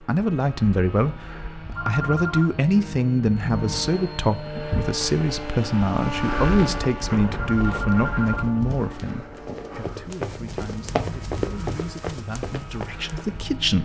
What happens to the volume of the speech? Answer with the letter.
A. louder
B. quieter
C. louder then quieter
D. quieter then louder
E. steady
B.